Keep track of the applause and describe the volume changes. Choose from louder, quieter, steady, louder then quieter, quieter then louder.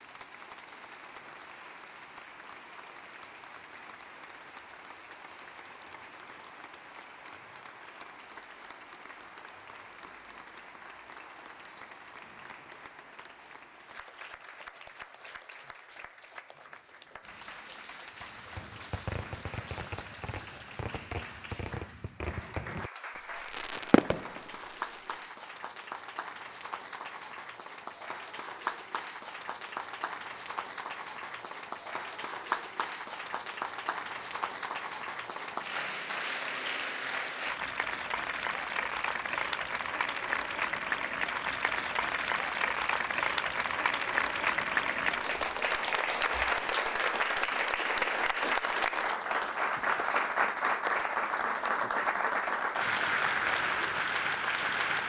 louder.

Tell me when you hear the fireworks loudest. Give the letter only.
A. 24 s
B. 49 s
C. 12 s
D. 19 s
A.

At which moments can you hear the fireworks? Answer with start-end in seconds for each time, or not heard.
18.2-25.2.